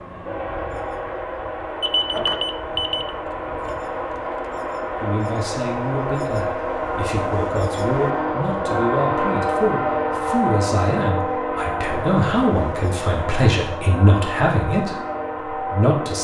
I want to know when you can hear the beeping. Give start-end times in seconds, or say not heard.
1.8-3.1.